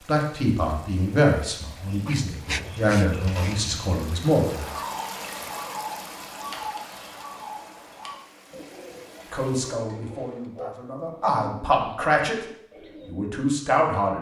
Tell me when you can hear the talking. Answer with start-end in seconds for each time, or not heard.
0.1-4.8, 9.3-12.4, 13.1-14.1.